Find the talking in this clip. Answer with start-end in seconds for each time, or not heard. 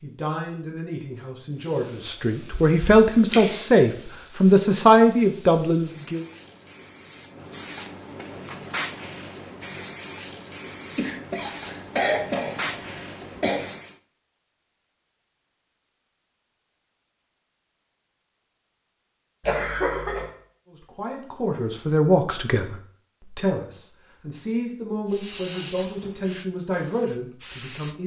0.0-6.2, 20.7-28.0.